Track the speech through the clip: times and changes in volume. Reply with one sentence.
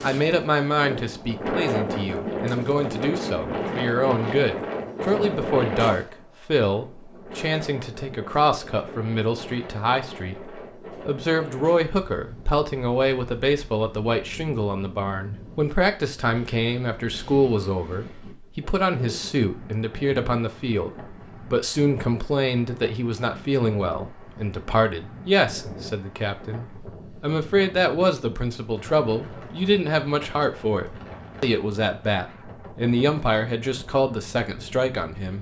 The speech can be heard from 0.0 to 35.3 s, at a steady volume.